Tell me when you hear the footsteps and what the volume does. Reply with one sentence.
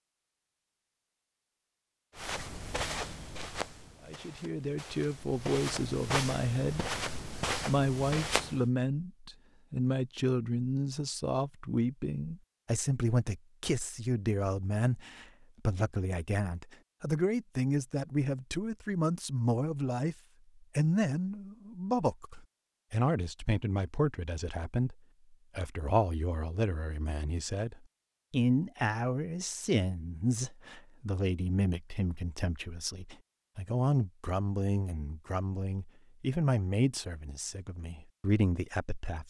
The footsteps can be heard from 2.1 to 8.7 s, getting quieter then louder.